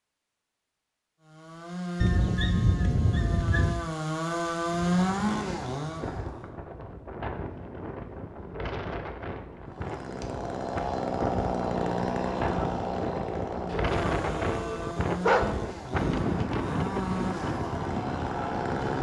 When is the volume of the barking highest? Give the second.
15 s.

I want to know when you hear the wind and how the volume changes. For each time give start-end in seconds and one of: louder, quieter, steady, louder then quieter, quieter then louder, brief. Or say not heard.
4.7-18.9 louder.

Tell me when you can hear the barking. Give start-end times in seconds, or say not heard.
2.0-3.8, 13.7-15.6.